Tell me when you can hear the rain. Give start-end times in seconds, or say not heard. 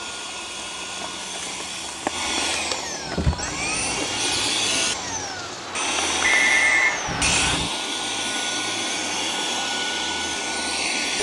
0.0-7.6.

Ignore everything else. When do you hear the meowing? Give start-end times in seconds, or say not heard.
3.2-4.1, 7.0-7.7.